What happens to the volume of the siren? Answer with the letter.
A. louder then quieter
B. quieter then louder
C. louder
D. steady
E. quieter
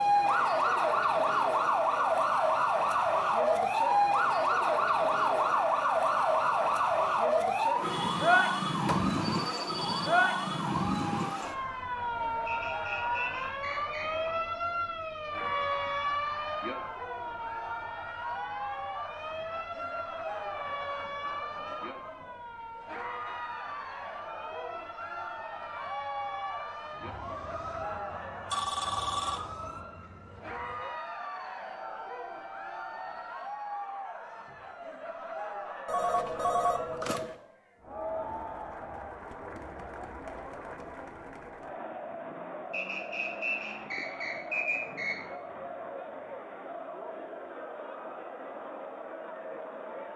E.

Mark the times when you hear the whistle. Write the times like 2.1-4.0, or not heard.
12.4-14.3, 42.7-45.1.